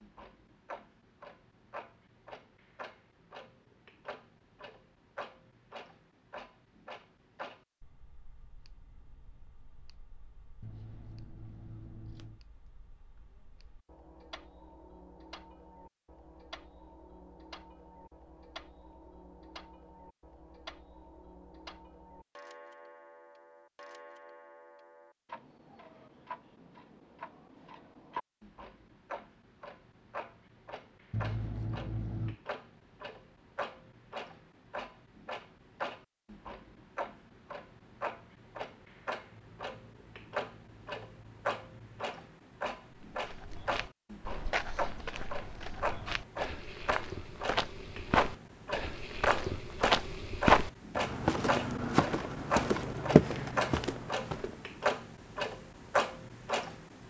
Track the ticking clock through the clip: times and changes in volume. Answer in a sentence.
You can hear the ticking clock from 0.0 to 57.0 s, getting louder.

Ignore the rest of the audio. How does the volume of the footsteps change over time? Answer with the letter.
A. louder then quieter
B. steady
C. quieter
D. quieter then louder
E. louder
E.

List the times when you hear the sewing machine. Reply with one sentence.
The sewing machine can't be heard in this clip.